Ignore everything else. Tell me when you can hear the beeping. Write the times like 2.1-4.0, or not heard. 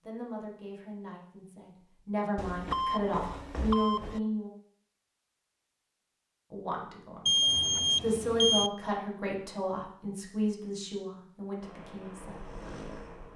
2.4-4.2, 7.2-8.7.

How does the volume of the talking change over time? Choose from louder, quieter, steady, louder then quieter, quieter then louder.
louder then quieter.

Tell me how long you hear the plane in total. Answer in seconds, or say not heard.
2 s.